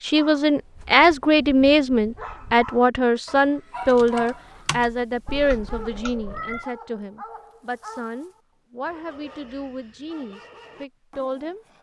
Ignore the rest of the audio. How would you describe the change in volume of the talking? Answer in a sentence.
The loudness of the talking goes down.